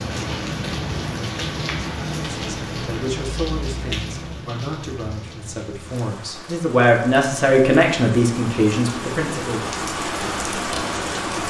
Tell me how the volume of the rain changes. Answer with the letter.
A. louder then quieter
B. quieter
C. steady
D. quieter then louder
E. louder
D.